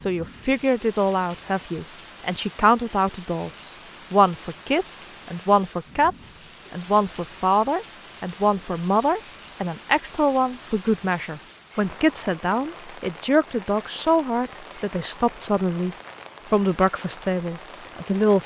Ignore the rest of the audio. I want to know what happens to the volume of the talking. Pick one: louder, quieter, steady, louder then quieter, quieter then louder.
steady.